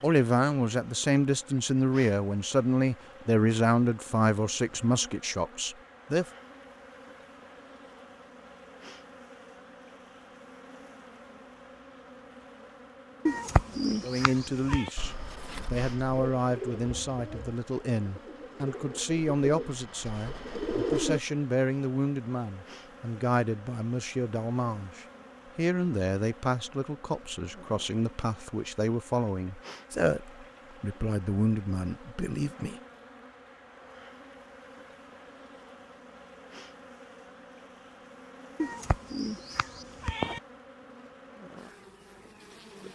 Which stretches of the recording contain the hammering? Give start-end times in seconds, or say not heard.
not heard.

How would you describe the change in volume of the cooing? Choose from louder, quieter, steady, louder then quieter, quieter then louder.
quieter then louder.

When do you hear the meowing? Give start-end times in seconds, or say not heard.
13.2-14.9, 38.5-40.4.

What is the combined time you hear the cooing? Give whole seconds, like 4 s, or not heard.
6 s.